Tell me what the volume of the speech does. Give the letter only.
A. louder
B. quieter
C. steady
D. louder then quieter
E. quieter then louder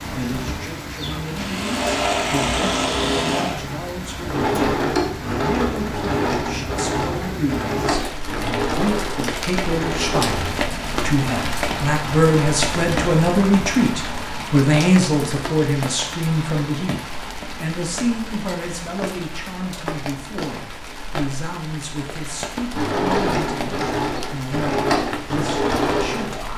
D.